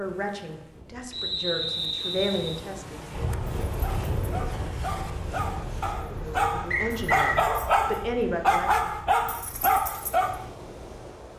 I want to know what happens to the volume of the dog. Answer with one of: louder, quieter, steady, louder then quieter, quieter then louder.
louder.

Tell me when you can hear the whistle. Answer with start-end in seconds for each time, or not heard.
1.1-2.6, 6.7-7.4.